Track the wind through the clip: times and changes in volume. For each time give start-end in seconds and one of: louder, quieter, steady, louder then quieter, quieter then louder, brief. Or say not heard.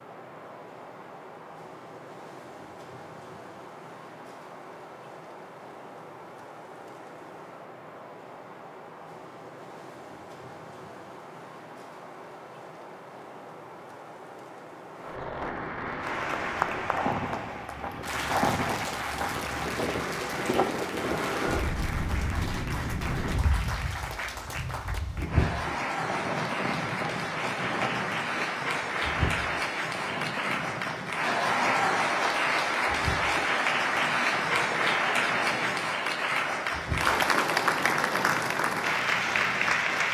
0.0-40.0 louder then quieter.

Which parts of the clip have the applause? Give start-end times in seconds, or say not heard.
15.9-40.0.